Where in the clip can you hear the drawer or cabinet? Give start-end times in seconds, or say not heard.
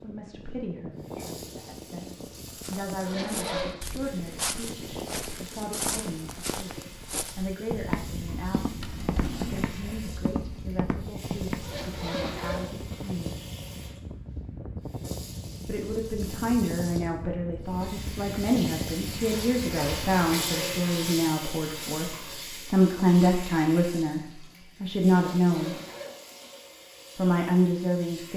8.8-9.7.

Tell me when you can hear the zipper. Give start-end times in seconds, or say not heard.
3.0-3.8, 11.6-13.2, 25.1-26.6.